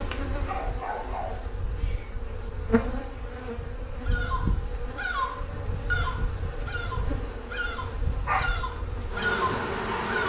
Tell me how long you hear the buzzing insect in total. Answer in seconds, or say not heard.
10 s.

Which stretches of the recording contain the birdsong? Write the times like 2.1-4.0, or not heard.
4.0-10.2.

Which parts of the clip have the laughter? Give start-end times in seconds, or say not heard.
not heard.